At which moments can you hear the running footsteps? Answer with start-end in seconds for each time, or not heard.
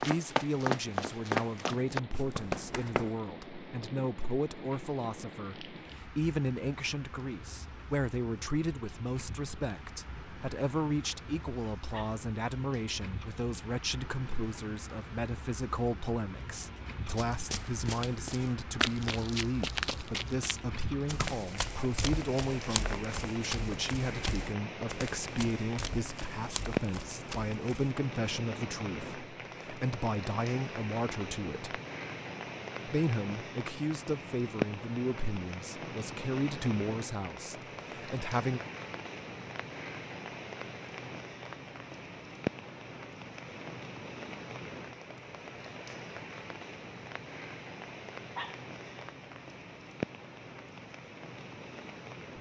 0.0-3.1, 17.1-27.9.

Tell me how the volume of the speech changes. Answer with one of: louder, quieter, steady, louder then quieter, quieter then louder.
steady.